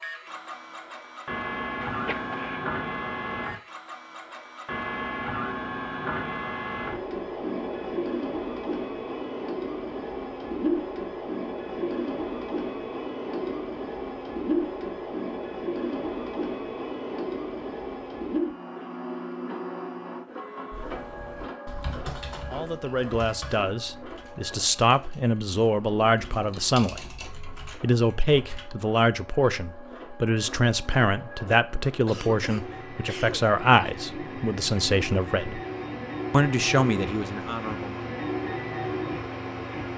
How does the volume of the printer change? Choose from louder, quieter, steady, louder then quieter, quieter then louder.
quieter then louder.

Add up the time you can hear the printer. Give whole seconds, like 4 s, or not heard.
40 s.